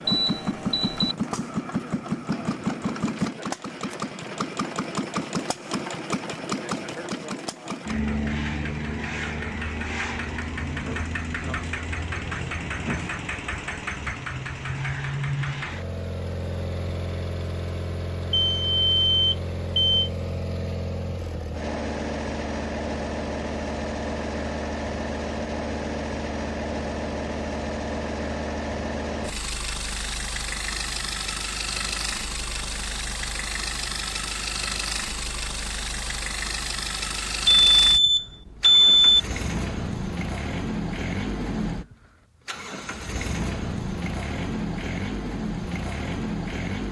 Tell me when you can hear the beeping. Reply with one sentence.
You can hear the beeping from 0.1 to 1.1 s, from 18.3 to 20.1 s and from 37.5 to 39.2 s.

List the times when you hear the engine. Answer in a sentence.
The engine can be heard from 0.0 to 46.8 s.